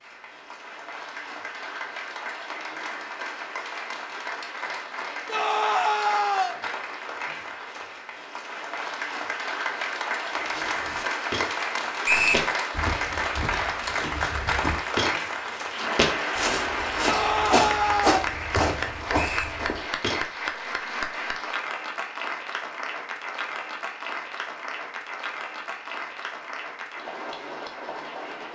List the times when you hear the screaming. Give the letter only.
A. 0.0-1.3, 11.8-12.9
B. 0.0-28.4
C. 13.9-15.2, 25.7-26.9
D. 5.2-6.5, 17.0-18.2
D.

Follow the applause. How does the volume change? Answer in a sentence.
The volume of the applause goes up, then down.